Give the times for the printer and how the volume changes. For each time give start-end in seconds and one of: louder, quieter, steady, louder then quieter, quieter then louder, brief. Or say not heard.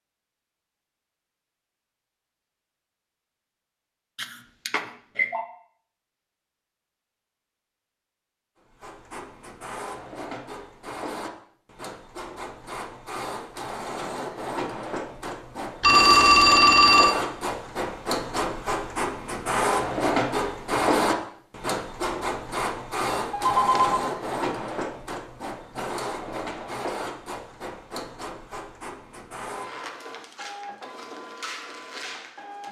8.7-32.6 louder then quieter.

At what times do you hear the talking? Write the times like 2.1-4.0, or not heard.
not heard.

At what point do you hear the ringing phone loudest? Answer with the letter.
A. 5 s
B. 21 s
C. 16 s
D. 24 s
C.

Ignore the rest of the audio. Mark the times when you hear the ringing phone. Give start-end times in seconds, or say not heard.
4.2-5.5, 15.8-17.1, 23.1-24.1.